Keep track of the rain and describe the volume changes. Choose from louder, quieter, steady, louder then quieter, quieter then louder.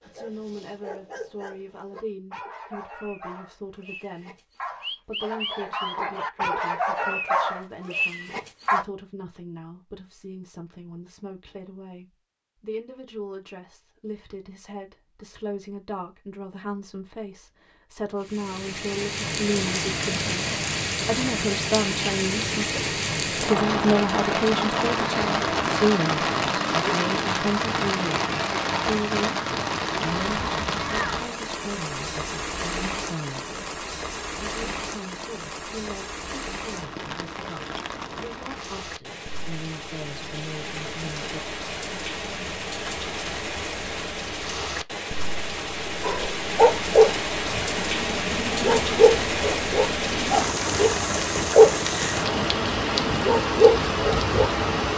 quieter then louder.